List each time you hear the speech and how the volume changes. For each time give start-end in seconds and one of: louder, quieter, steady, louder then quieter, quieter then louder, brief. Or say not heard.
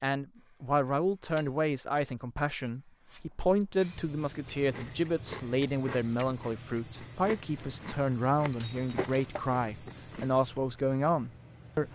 0.0-11.9 steady.